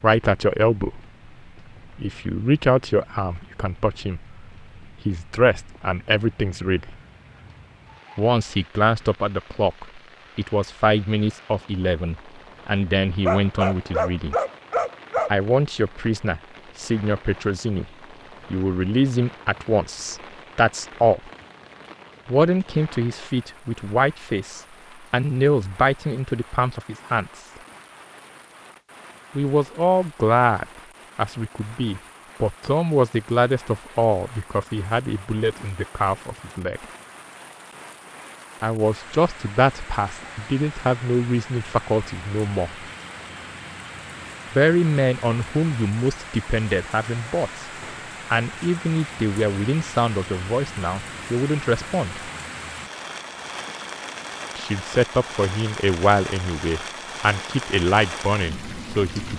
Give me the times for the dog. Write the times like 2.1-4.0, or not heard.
13.2-15.3.